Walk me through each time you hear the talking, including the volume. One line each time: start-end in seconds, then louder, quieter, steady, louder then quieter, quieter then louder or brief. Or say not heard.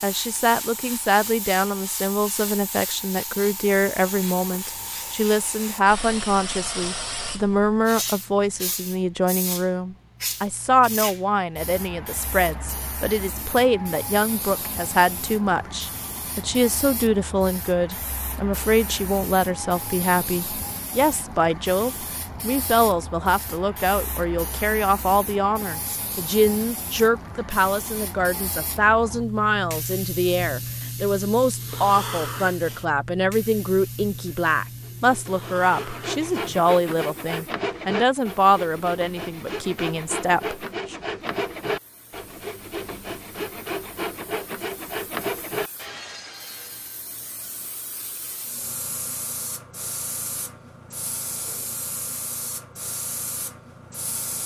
0.0-41.0 steady.